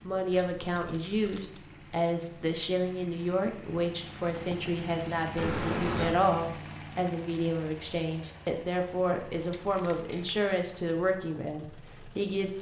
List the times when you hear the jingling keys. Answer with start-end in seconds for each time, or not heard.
0.3-1.6, 5.3-6.2, 9.3-10.3.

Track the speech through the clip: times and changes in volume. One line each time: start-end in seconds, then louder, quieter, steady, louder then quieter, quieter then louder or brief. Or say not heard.
0.0-12.5 steady.